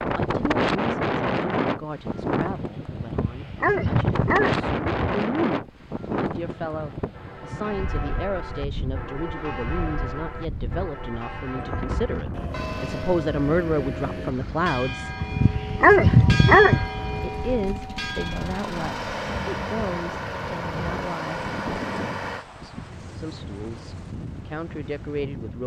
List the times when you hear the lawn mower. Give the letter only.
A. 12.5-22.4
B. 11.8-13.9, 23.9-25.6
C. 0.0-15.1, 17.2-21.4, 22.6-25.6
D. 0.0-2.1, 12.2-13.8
A.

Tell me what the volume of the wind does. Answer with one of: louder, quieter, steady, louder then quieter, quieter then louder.
quieter.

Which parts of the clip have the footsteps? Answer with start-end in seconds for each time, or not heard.
not heard.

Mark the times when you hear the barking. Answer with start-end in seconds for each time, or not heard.
3.0-5.2, 15.2-16.9.